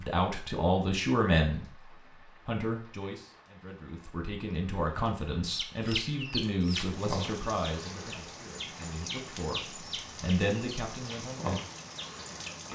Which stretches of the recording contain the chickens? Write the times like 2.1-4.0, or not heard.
5.5-12.7.